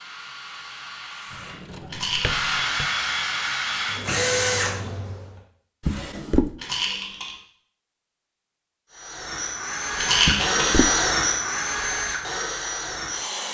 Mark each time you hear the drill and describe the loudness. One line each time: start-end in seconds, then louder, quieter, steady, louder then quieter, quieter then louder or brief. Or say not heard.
0.0-5.4 louder
8.9-13.4 louder then quieter.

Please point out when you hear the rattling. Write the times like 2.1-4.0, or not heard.
1.9-2.5, 6.5-7.3, 9.9-10.8.